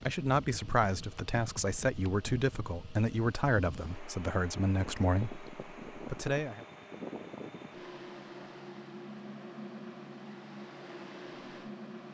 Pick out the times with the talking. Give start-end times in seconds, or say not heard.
0.1-6.7.